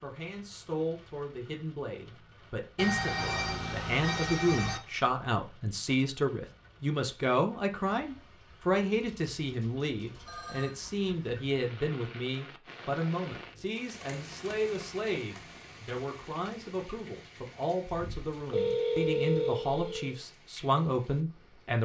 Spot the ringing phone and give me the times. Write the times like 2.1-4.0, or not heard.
2.8-4.8, 8.9-10.7, 17.9-20.2.